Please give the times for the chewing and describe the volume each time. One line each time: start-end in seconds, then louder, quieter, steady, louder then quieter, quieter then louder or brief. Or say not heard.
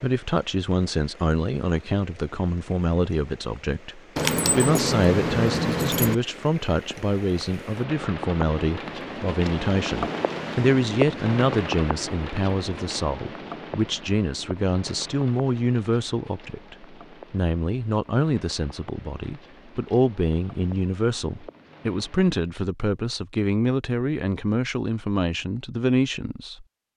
not heard.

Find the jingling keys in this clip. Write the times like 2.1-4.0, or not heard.
4.2-6.2.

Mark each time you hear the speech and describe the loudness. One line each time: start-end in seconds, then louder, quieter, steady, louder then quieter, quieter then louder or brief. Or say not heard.
0.0-26.9 steady.